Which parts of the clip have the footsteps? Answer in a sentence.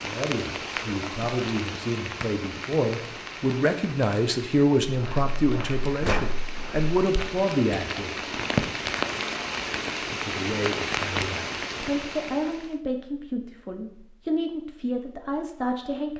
You can hear the footsteps from 4.8 to 7.0 s.